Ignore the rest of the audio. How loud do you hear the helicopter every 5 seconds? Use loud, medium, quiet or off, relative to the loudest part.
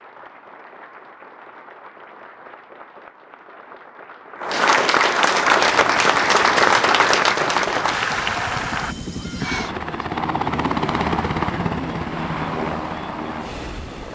off, medium, loud.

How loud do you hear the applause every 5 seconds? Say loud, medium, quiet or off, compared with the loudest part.
medium, loud, off.